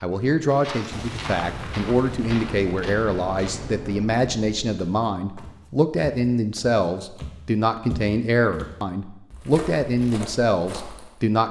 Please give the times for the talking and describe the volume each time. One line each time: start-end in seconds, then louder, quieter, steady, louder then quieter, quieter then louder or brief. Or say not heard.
0.0-11.4 steady.